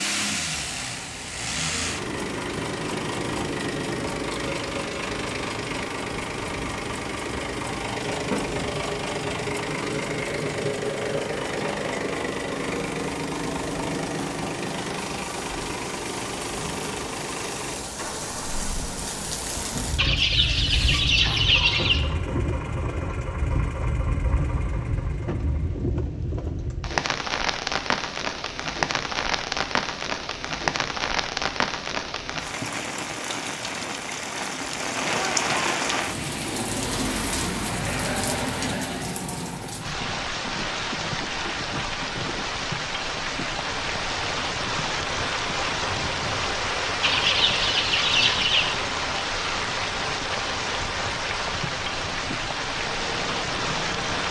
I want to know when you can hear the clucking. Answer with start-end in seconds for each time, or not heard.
19.9-22.0, 47.0-48.8.